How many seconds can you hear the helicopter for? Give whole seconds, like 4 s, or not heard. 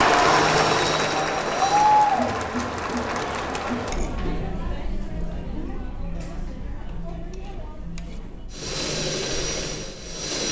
4 s.